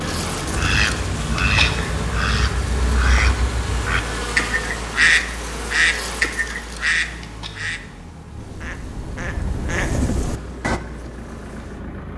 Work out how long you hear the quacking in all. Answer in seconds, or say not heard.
10 s.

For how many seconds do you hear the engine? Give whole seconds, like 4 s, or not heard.
12 s.